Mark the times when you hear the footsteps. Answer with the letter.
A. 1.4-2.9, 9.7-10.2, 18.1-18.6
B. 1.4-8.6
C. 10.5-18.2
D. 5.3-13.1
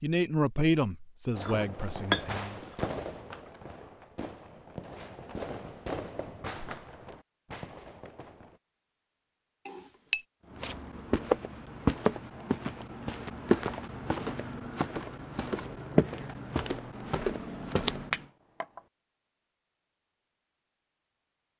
C.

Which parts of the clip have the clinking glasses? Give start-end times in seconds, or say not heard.
1.4-2.9, 9.7-10.2, 18.1-18.6.